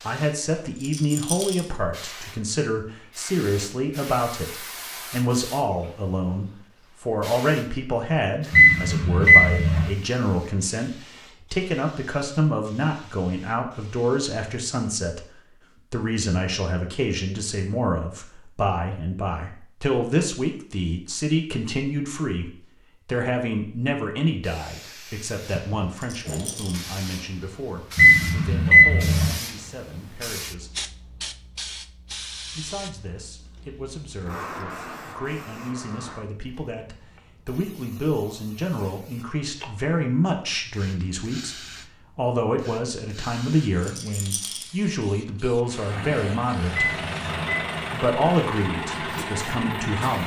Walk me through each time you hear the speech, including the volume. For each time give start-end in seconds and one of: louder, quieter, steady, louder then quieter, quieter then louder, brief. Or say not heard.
0.1-30.8 quieter
32.5-47.0 louder
47.9-50.2 brief.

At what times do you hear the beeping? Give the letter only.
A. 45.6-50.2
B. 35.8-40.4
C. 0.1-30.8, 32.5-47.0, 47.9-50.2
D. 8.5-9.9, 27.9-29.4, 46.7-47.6
D.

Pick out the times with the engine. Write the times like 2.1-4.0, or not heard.
45.6-50.2.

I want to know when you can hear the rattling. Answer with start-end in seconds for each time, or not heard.
0.8-1.6, 25.9-26.9, 43.8-44.7.